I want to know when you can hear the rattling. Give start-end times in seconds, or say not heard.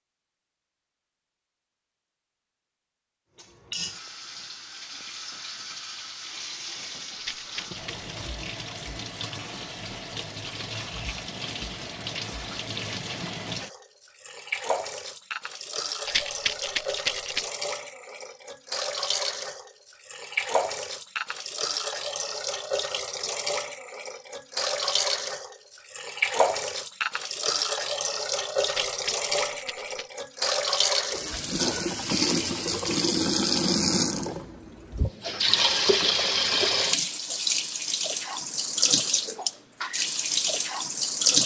7.2-8.0, 16.1-17.4, 28.6-30.1.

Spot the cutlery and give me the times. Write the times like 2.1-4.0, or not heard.
not heard.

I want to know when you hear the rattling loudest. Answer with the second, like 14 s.
17 s.